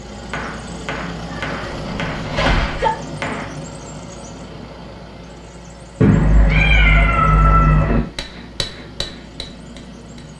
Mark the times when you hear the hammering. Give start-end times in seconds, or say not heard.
0.3-3.6, 8.0-10.3.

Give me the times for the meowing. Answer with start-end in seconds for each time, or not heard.
1.5-2.9, 6.0-8.0.